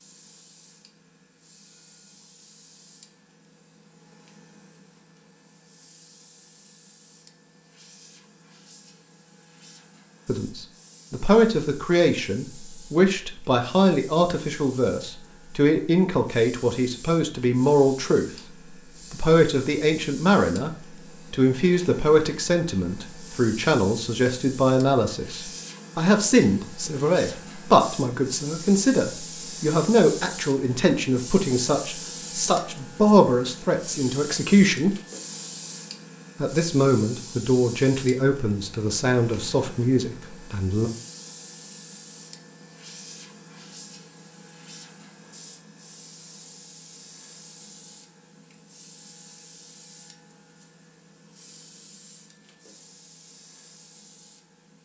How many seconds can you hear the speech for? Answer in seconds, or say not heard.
28 s.